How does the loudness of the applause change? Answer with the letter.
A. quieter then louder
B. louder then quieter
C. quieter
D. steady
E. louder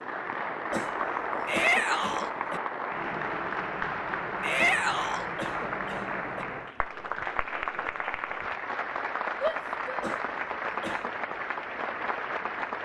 D.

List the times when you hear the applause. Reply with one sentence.
You can hear the applause from 0.0 to 12.8 s.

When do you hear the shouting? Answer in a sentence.
You can hear the shouting from 1.4 to 2.3 s, from 4.4 to 5.2 s and from 9.4 to 10.0 s.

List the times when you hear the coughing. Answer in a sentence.
You can hear the coughing from 0.7 to 2.6 s, from 4.5 to 6.5 s and from 10.0 to 11.2 s.